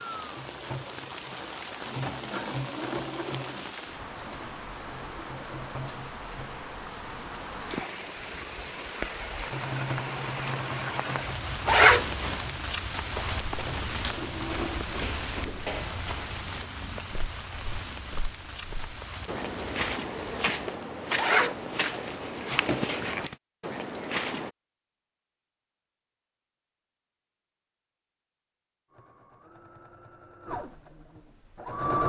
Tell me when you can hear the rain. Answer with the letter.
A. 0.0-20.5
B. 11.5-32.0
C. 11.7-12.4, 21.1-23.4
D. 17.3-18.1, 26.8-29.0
A.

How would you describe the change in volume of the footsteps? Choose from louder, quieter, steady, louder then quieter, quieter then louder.
louder.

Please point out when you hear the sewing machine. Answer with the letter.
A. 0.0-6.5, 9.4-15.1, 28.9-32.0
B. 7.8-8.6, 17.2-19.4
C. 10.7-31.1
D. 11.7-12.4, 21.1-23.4
A.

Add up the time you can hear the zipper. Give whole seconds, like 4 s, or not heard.
3 s.